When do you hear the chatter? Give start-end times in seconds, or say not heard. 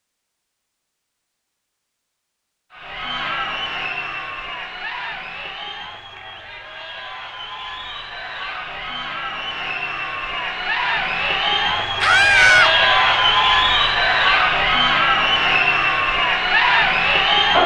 2.7-17.6.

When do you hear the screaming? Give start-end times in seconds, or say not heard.
12.0-12.8.